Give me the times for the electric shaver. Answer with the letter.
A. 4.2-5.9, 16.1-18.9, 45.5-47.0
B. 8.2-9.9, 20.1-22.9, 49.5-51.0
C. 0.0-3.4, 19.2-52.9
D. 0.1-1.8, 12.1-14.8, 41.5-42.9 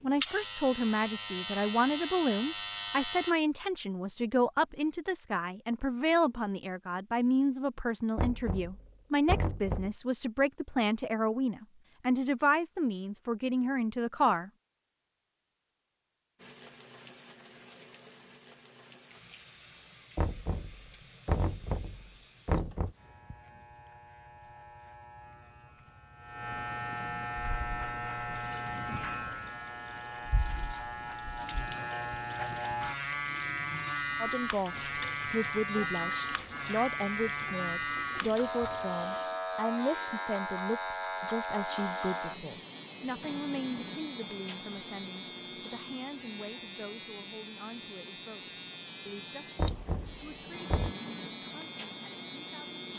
C.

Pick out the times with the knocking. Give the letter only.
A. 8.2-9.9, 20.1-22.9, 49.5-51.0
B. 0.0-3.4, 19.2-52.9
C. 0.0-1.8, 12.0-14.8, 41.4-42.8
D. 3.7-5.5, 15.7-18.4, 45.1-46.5
A.